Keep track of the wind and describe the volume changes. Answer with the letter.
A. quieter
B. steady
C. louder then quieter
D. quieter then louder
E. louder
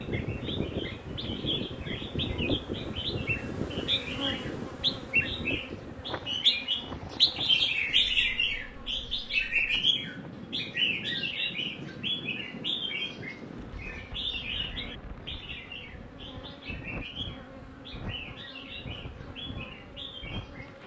A.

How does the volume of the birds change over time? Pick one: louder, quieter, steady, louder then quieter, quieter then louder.
louder then quieter.